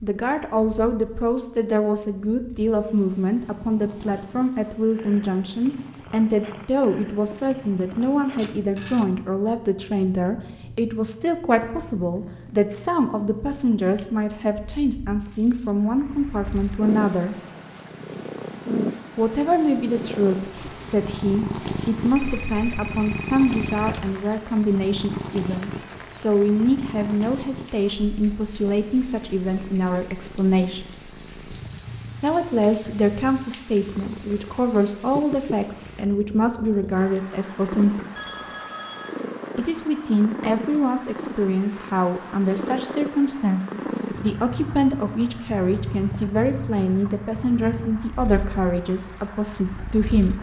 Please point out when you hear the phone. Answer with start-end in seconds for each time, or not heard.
7.3-9.1, 22.1-24.1, 38.1-39.2.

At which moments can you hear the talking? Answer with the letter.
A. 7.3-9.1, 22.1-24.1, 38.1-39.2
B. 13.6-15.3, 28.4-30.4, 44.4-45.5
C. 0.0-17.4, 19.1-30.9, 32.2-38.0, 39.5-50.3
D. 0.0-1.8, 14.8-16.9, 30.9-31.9
C.